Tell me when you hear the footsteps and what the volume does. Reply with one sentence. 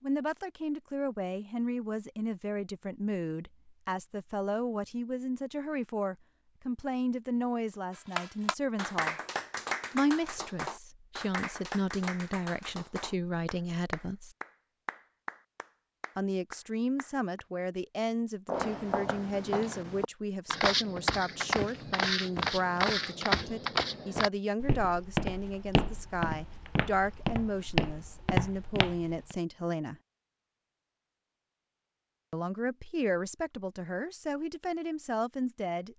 You can hear the footsteps from 18.4 to 29.4 s, at a steady volume.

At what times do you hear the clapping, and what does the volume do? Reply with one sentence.
The clapping can be heard from 8.2 to 17.4 s, getting quieter.